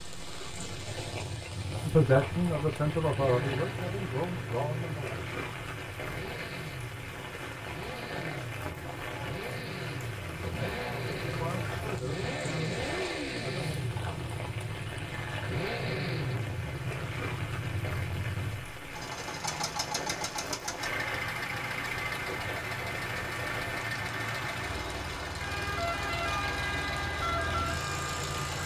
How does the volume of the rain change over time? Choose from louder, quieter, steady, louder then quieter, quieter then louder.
steady.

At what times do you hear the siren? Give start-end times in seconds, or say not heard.
25.4-28.6.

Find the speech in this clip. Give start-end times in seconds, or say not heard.
1.9-5.2, 10.2-13.8.